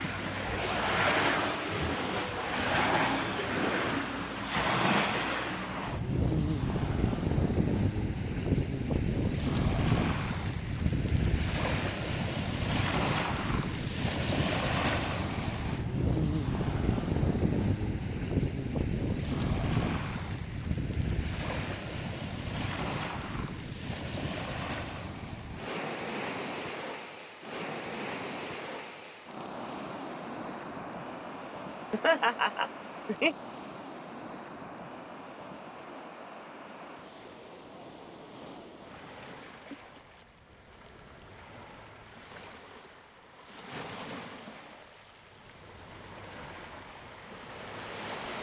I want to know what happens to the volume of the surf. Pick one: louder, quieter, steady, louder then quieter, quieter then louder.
quieter.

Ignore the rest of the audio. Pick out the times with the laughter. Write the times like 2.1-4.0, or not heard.
31.9-33.4.